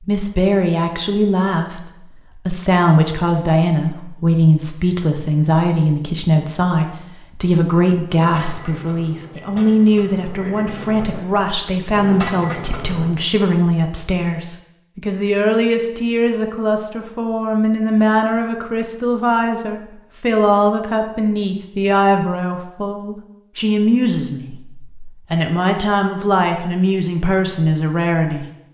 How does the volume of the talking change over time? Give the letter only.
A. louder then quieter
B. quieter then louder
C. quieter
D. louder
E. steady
E.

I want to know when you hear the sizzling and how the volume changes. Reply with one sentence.
The sizzling can't be heard in this clip.